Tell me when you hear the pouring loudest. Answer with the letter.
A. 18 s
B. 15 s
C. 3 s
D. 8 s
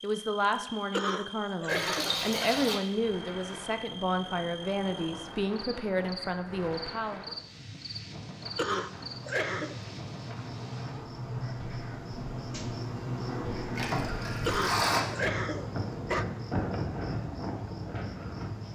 B.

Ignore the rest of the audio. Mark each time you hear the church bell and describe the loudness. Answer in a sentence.
The church bell can't be heard in this clip.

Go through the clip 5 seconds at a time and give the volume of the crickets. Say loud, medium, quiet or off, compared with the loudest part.
medium, medium, loud, medium.